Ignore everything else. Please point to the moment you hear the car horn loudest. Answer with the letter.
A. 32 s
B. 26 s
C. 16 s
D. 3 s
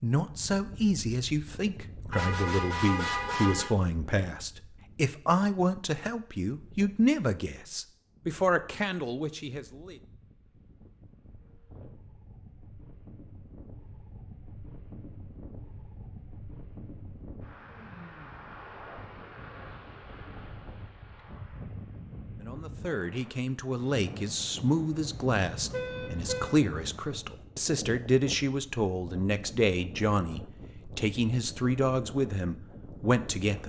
D.